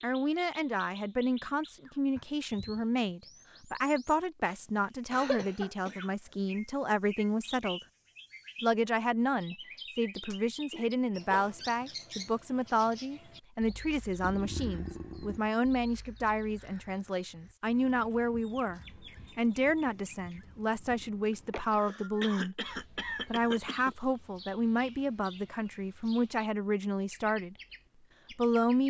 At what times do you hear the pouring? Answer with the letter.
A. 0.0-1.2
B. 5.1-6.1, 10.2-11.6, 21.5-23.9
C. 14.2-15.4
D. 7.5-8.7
C.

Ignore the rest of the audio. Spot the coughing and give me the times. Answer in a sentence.
The coughing can be heard from 5.1 to 6.1 s, from 10.2 to 11.6 s and from 21.5 to 23.9 s.